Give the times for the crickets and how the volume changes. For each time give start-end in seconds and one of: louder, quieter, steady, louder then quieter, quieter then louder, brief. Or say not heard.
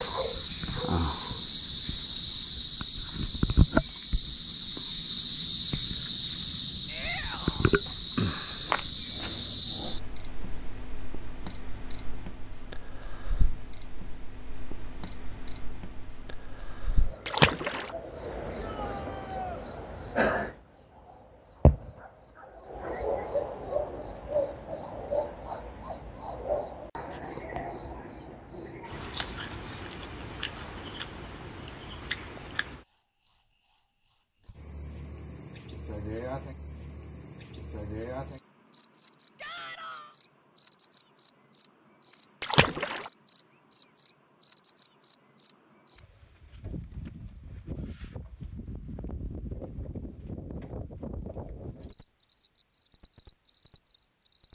0.0-54.4 quieter.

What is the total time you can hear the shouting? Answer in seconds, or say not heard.
3 s.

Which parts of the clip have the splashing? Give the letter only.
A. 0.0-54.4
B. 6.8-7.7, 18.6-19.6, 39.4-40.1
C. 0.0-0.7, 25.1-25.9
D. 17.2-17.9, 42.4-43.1
D.